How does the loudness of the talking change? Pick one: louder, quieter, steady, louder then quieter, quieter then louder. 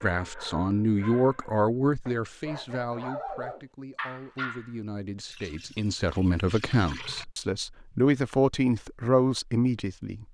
quieter then louder.